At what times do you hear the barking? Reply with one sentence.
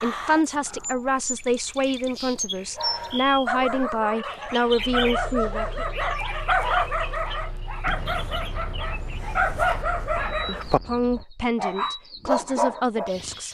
You can hear the barking from 2.8 to 13.1 s.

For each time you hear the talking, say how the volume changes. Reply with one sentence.
You can hear the talking from 0.0 to 5.8 s, at a steady volume; and briefly from 10.4 to 13.4 s.